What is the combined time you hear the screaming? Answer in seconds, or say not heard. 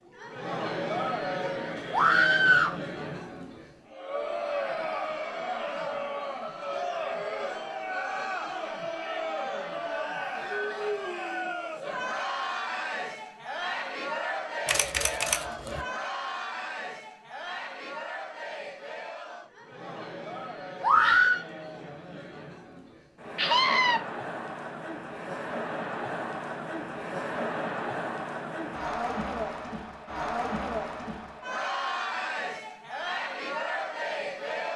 2 s.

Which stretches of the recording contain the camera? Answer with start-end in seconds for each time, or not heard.
14.7-15.8.